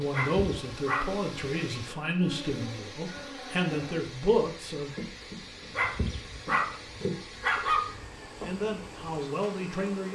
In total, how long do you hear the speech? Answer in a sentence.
The speech can be heard for 7 seconds in total.